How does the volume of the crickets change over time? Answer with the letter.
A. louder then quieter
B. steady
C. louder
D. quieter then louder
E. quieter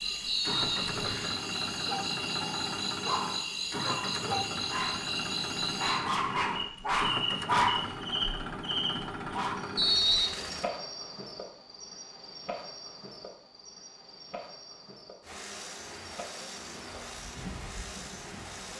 E.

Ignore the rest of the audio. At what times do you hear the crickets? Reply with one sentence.
You can hear the crickets from 0.0 to 18.7 s.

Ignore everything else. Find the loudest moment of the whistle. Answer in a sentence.
The volume of the whistle peaks at 10 seconds.